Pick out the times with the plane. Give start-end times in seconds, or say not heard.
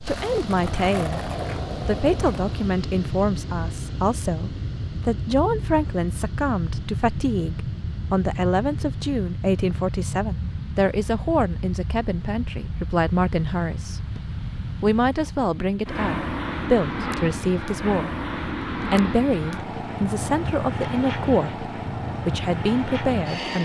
0.0-23.6.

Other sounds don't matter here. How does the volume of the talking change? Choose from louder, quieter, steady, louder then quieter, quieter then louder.
steady.